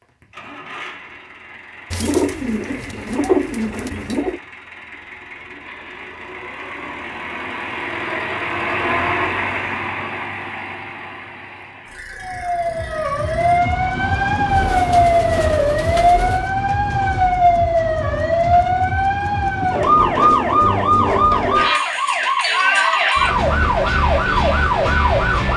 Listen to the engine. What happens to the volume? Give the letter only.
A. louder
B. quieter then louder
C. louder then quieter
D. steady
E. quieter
C.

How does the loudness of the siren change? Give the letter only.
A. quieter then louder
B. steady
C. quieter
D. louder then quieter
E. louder
B.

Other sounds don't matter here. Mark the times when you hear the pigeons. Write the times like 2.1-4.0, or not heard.
1.9-4.4, 14.4-16.5.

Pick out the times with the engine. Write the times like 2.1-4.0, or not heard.
0.0-13.6.